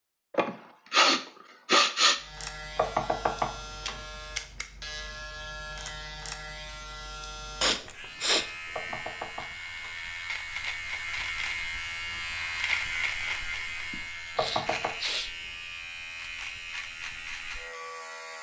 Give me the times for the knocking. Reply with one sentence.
The knocking can be heard from 2.8 to 4.0 s, from 8.7 to 9.9 s and from 14.3 to 14.9 s.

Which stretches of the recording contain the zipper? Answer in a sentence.
You can't hear the zipper here.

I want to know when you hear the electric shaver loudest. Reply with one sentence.
The loudest moment of the electric shaver is at 13 seconds.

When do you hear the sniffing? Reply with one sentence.
The sniffing can be heard from 0.3 to 2.1 s, from 7.6 to 8.9 s and from 13.9 to 15.3 s.